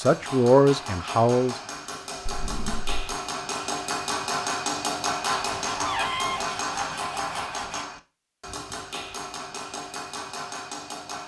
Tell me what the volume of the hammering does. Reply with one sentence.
The loudness of the hammering goes up, then down.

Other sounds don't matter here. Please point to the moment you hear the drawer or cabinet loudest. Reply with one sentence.
The volume of the drawer or cabinet peaks at 6 seconds.